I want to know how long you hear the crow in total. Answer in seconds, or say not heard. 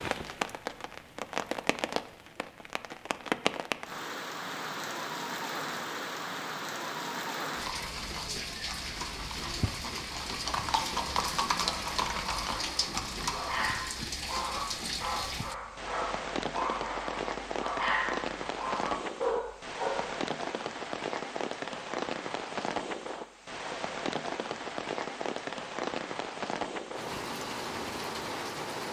not heard.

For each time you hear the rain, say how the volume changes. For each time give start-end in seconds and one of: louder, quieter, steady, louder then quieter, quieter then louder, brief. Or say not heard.
0.0-28.8 steady.